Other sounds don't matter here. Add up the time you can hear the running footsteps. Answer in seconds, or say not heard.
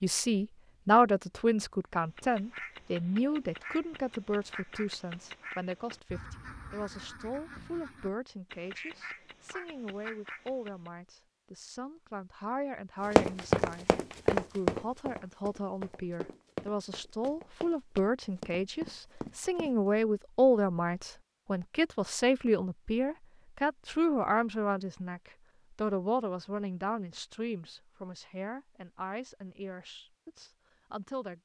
7 s.